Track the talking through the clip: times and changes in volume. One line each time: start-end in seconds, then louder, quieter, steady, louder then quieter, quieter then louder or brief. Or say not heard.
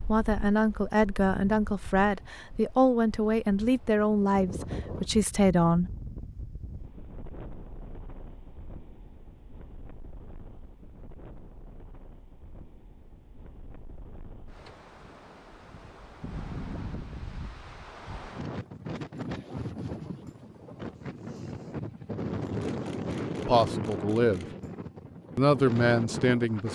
0.0-5.9 steady
23.4-24.4 brief
25.4-26.7 brief.